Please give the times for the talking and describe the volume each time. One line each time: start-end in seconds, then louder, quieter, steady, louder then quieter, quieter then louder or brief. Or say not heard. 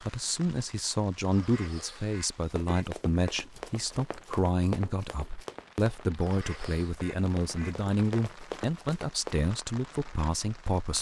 0.0-10.9 steady.